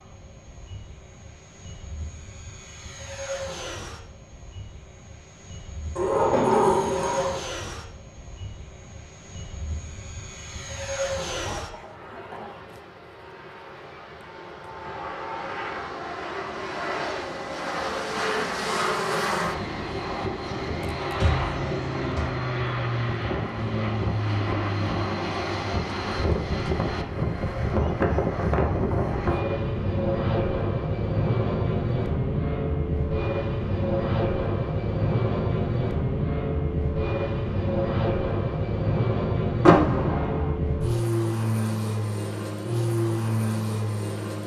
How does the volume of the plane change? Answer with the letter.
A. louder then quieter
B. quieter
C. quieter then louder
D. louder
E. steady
D.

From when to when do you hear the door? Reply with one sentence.
You can hear the door from 6.0 to 7.4 s, from 20.9 to 22.2 s and from 39.6 to 40.5 s.